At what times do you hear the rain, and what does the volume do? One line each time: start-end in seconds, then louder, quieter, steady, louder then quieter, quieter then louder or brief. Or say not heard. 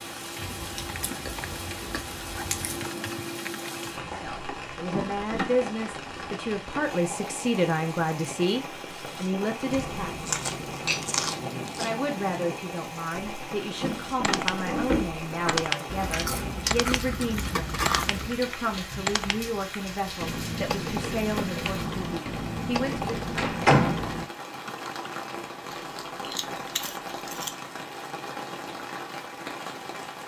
0.0-30.2 steady.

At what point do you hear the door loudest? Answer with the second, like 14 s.
24 s.